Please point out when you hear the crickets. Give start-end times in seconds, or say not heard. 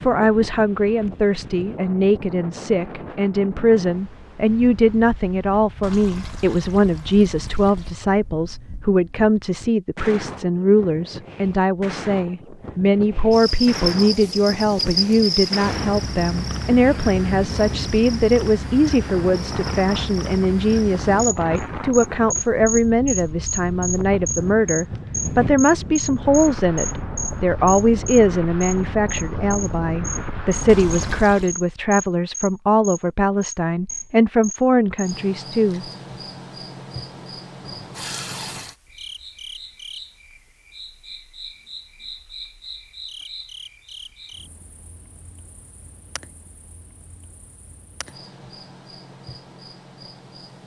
13.3-50.6.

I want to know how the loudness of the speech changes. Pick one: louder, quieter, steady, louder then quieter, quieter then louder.
steady.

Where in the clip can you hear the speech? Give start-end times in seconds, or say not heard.
0.0-35.9.